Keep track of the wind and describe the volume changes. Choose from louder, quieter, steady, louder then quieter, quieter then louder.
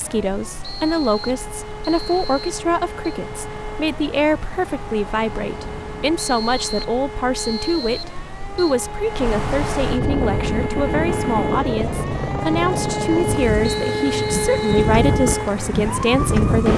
louder.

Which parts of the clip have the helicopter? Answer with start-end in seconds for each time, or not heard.
10.2-16.7.